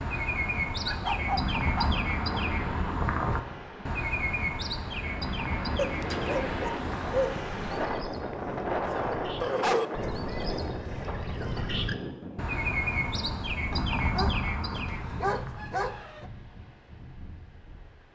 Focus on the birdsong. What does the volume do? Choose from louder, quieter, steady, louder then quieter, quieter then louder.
quieter then louder.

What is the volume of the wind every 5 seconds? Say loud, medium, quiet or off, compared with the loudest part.
medium, loud, medium, quiet.